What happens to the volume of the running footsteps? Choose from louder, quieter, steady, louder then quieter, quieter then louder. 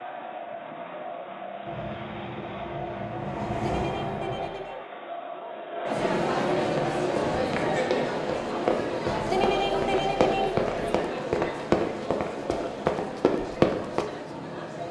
louder.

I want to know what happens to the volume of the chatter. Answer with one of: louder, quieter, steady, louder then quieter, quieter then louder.
louder then quieter.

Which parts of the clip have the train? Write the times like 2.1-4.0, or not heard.
1.6-4.5.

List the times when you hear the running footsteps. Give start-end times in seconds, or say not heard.
6.8-14.1.